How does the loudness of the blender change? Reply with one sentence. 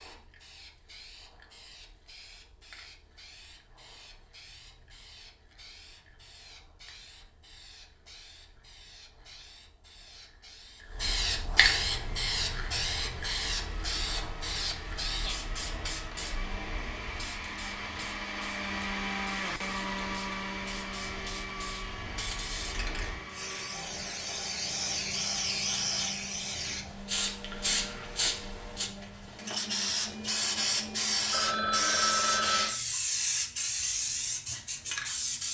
The loudness of the blender goes up, then down.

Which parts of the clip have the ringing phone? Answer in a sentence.
You can hear the ringing phone from 31.3 to 32.8 s.